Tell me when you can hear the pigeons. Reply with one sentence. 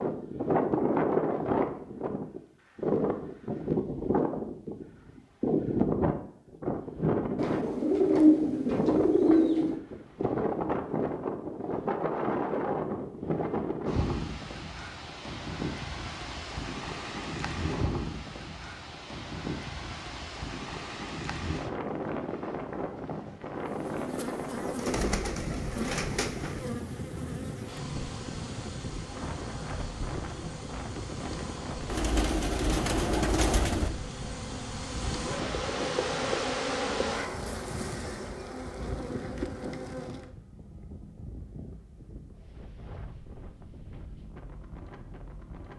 You can hear the pigeons from 7.3 to 9.8 s, from 24.8 to 26.6 s and from 31.9 to 33.9 s.